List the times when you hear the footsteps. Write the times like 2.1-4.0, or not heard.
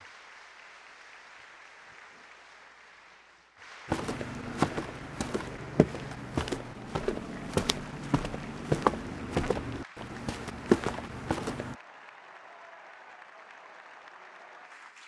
3.9-11.8.